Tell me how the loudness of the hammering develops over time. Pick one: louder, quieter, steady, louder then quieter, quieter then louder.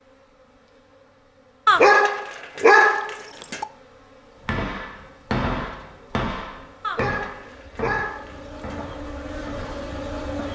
quieter.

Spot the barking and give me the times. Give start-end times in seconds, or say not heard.
1.6-3.6, 6.8-8.8.